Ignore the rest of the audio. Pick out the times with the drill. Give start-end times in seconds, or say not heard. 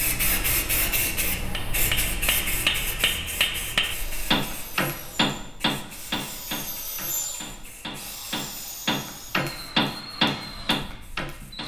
3.9-11.6.